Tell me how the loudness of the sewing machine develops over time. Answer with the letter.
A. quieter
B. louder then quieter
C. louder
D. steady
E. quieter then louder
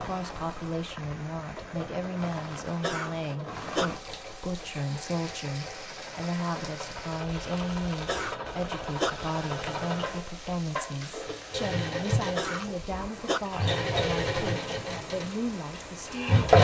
C.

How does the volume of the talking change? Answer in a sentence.
The volume of the talking stays about the same.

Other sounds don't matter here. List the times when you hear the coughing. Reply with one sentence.
You can hear the coughing from 2.8 to 3.9 s, from 8.1 to 9.1 s and from 12.3 to 13.4 s.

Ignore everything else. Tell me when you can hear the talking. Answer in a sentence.
You can hear the talking from 0.0 to 16.4 s.